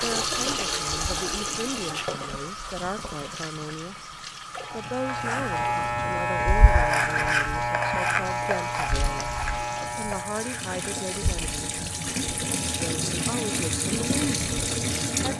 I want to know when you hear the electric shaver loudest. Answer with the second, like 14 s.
7 s.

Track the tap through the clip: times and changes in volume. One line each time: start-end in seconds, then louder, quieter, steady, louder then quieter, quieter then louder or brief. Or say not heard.
0.0-15.3 quieter then louder.